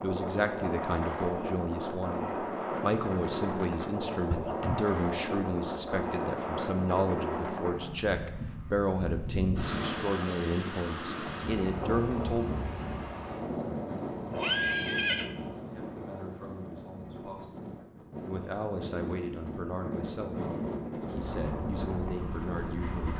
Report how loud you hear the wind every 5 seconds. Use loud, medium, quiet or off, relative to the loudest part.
loud, loud, loud, medium, loud.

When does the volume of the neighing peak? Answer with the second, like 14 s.
15 s.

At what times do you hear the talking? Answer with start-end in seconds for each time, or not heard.
0.0-12.5, 15.7-23.1.